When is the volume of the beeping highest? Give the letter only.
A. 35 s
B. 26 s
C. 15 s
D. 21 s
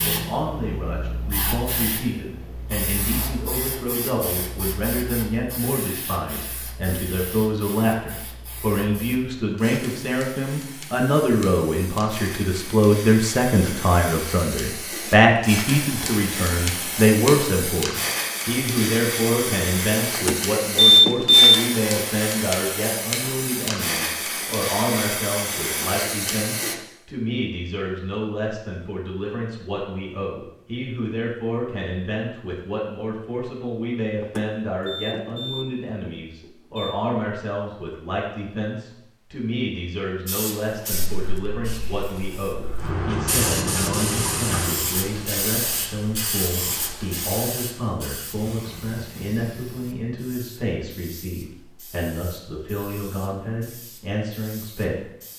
D.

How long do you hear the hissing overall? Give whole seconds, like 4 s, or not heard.
42 s.